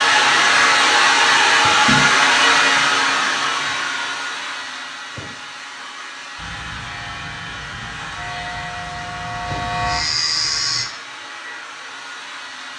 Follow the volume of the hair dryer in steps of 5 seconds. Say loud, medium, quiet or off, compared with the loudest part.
loud, quiet, quiet.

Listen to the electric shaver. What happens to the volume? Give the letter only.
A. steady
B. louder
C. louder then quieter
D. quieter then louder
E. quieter
B.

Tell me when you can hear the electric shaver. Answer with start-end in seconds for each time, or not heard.
6.3-10.8.